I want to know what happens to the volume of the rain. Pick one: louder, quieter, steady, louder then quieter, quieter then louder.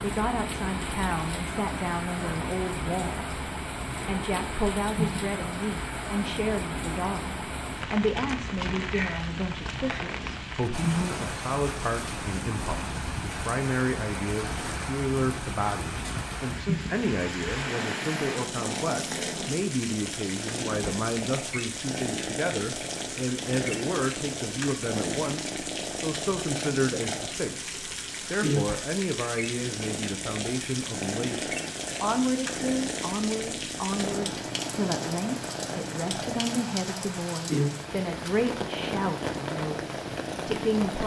steady.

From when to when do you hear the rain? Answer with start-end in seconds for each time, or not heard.
0.0-41.0.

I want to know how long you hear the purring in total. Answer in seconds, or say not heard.
41 s.